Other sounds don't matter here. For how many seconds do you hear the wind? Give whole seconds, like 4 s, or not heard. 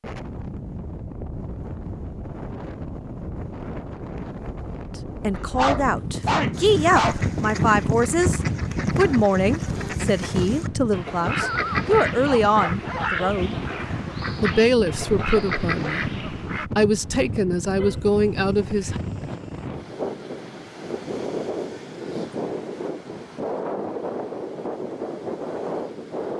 26 s.